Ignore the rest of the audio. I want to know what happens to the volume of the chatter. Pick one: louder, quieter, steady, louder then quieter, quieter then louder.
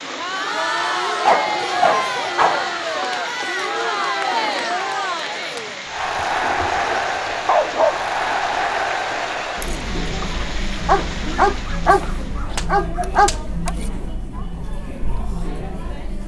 quieter.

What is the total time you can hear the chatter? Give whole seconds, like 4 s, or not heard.
16 s.